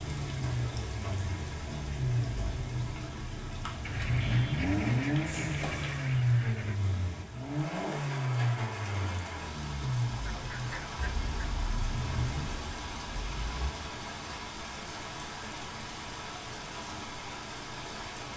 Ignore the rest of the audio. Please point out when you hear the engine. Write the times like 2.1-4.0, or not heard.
0.0-12.4.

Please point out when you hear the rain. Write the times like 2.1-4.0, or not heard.
0.0-18.3.